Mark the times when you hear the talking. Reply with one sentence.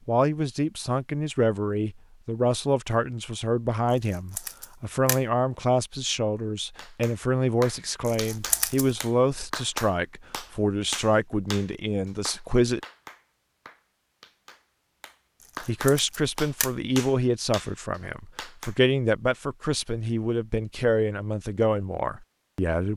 The talking can be heard from 0.1 to 12.8 s and from 15.6 to 22.9 s.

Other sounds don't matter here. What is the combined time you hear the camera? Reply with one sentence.
You can hear the camera for 3 seconds altogether.